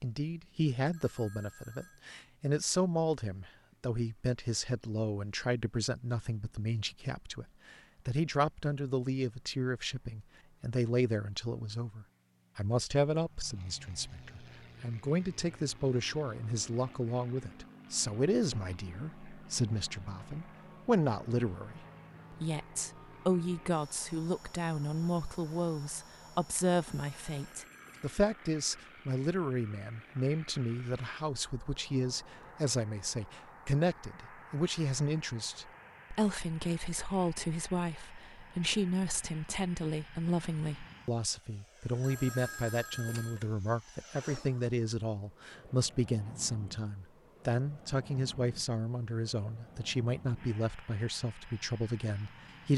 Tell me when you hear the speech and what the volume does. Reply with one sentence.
You can hear the speech from 0.0 to 52.7 s, at a steady volume.